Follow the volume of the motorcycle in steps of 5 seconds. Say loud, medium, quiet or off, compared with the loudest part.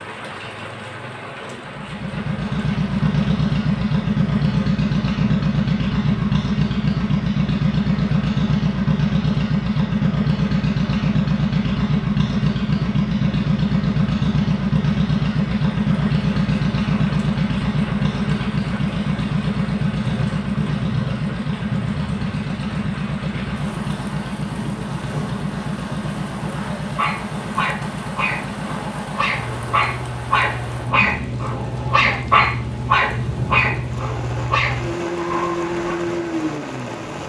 loud, loud, loud, loud, medium, medium, medium, medium.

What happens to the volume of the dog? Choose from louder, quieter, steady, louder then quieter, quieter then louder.
louder then quieter.